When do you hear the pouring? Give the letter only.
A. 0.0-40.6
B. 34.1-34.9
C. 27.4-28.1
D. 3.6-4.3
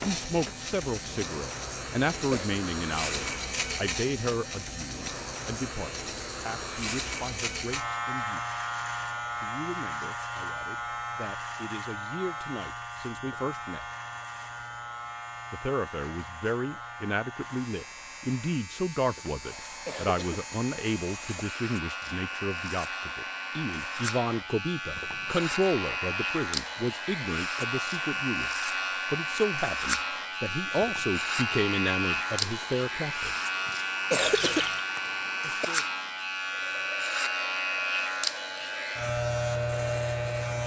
B.